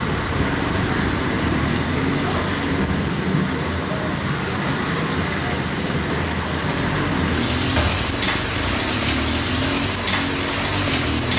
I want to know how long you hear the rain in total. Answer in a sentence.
The rain can be heard for 11 seconds in total.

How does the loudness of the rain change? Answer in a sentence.
The loudness of the rain stays about the same.